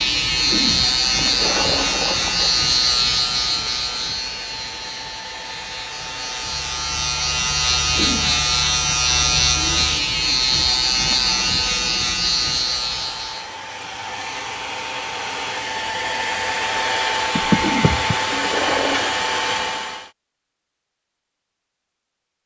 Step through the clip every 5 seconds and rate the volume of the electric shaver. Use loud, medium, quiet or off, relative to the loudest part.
loud, loud, loud, off, off.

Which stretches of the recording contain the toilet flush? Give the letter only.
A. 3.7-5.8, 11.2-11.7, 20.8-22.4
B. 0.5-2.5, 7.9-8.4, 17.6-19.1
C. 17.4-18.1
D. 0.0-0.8
B.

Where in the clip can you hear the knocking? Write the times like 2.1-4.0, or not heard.
17.4-18.1.